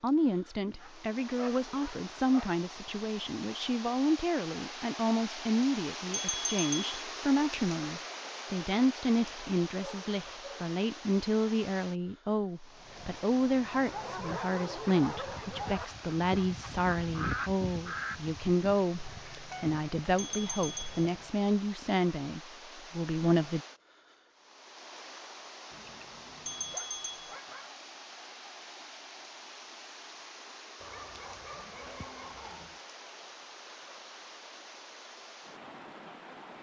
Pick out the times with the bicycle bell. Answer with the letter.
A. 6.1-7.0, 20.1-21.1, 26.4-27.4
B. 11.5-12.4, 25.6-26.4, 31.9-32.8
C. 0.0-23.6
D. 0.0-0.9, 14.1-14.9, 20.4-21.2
A.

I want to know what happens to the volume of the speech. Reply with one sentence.
The volume of the speech stays about the same.